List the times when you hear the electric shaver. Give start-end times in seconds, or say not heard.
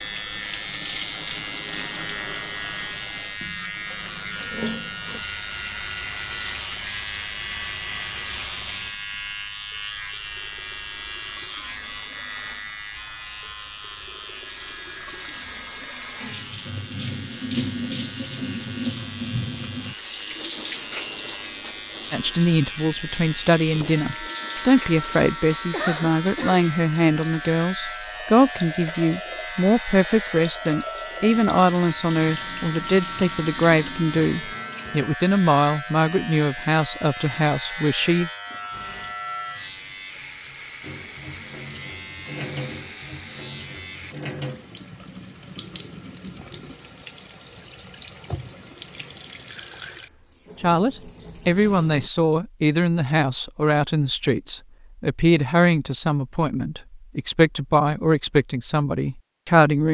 0.0-44.1.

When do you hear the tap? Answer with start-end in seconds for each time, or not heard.
0.0-35.0, 38.7-52.1.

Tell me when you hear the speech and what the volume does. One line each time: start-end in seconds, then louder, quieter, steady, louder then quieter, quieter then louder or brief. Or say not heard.
22.1-38.3 steady
50.6-59.8 steady.